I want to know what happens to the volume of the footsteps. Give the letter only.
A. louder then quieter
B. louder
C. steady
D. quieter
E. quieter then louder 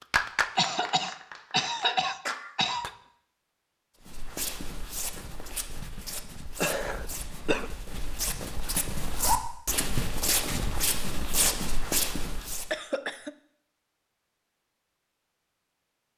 B.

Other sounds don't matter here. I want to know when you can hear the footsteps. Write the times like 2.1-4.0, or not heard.
4.0-12.7.